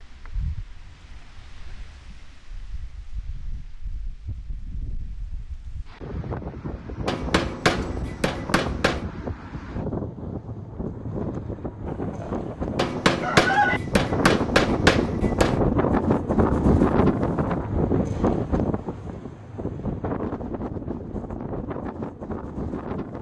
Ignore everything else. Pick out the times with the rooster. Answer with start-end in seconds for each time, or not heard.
11.8-13.8.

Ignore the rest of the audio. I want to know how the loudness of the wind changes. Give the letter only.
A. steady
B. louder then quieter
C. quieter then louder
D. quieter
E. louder
B.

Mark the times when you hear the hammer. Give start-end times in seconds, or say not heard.
7.0-9.1, 12.8-15.6.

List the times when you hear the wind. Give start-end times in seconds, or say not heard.
0.0-23.1.